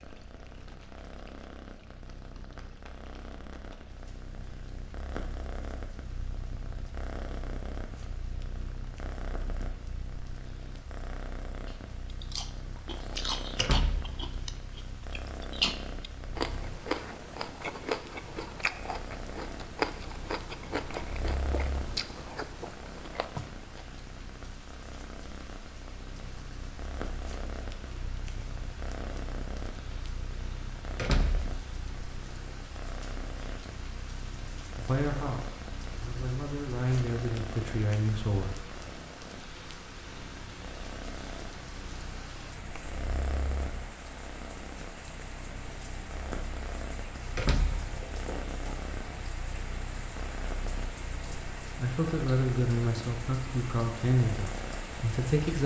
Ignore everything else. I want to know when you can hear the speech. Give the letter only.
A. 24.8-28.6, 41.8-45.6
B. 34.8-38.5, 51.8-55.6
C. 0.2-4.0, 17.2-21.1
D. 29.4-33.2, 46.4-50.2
B.